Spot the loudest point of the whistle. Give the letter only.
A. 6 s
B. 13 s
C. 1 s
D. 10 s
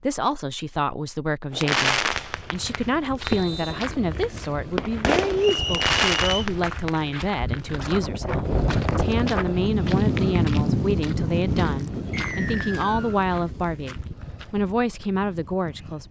A.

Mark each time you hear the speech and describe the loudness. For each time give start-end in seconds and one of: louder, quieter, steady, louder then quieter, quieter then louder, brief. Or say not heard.
0.0-16.0 steady.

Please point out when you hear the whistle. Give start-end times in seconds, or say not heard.
3.2-3.9, 5.4-6.5, 12.1-13.2.